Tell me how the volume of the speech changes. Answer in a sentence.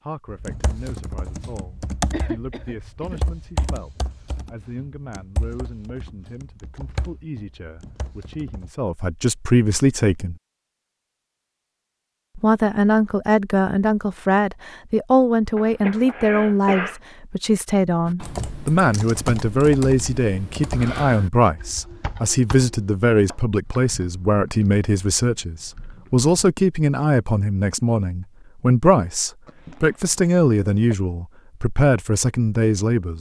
The loudness of the speech goes up.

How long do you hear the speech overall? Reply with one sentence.
The speech can be heard for 31 seconds in total.